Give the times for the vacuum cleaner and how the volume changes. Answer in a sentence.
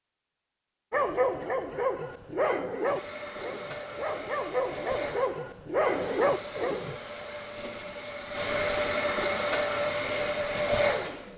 The vacuum cleaner can be heard from 2.8 to 11.3 s, getting louder.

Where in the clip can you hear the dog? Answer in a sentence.
You can hear the dog from 0.9 to 7.0 s.